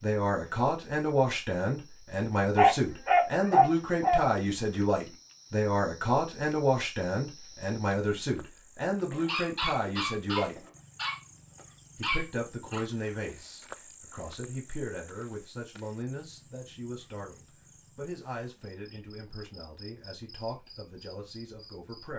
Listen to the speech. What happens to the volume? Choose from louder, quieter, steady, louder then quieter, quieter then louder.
quieter.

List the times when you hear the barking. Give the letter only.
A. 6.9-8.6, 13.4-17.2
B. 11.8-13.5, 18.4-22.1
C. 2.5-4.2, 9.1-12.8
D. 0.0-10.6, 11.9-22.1
C.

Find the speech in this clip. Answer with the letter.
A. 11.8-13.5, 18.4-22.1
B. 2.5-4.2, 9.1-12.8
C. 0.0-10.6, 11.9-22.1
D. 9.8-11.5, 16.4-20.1
C.